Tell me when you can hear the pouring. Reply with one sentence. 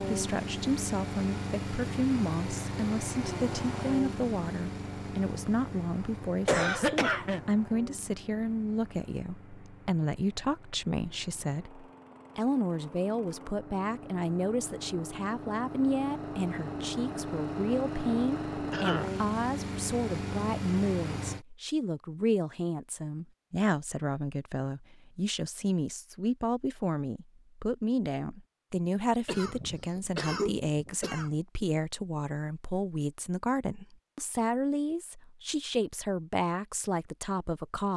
The pouring can't be heard in this clip.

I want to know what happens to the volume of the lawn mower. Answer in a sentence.
The loudness of the lawn mower goes down, then up.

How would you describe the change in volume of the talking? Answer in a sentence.
The loudness of the talking stays about the same.